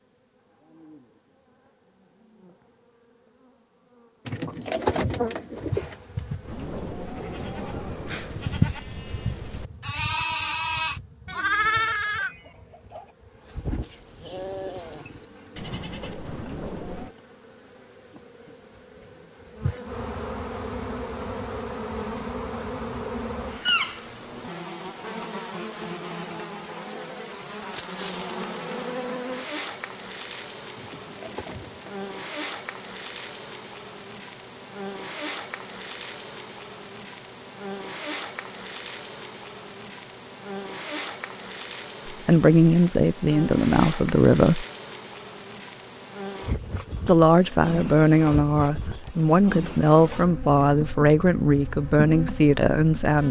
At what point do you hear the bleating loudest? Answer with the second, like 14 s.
12 s.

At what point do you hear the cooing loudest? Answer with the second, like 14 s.
5 s.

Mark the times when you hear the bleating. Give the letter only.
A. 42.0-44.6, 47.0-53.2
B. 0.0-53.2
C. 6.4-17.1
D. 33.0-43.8
C.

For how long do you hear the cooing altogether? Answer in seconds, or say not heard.
3 s.